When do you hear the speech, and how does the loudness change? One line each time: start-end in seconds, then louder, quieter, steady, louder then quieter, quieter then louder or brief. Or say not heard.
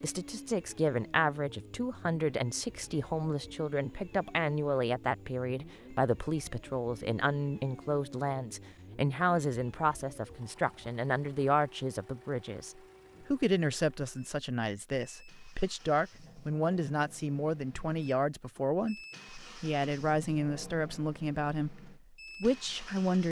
0.0-23.2 steady.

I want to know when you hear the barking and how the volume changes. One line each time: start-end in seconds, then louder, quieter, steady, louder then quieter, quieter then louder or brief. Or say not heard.
not heard.